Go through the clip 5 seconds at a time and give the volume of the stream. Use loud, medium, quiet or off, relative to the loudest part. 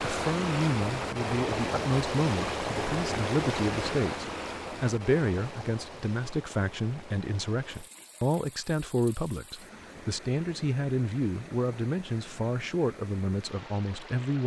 loud, quiet, quiet.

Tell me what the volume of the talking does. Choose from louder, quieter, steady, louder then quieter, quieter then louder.
steady.